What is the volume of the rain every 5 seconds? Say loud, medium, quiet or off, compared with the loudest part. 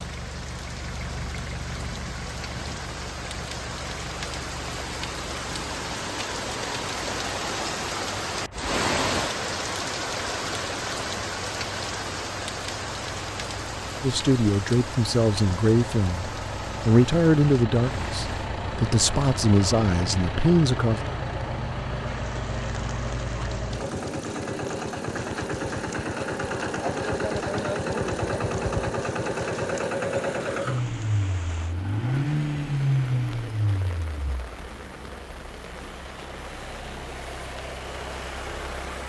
medium, loud, loud, medium, quiet, quiet, quiet, quiet.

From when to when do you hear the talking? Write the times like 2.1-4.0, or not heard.
14.0-21.0.